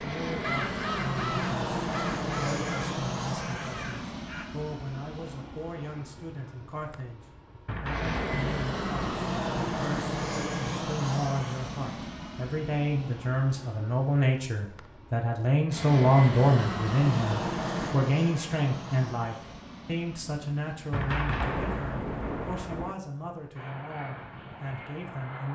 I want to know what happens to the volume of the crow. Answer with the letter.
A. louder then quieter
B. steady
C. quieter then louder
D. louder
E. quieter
E.